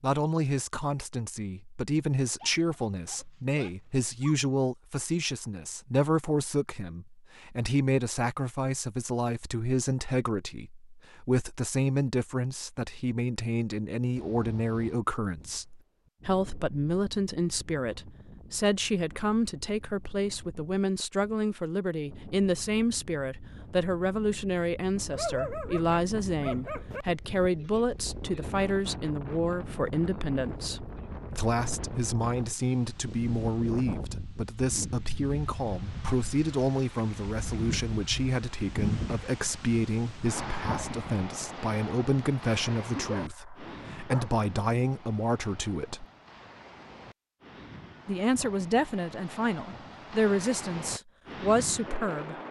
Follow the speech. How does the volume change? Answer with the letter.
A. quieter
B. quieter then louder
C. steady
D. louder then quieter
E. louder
C.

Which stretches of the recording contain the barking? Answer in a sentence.
The barking can be heard from 2.4 to 4.4 s, from 25.1 to 27.1 s and from 42.9 to 44.4 s.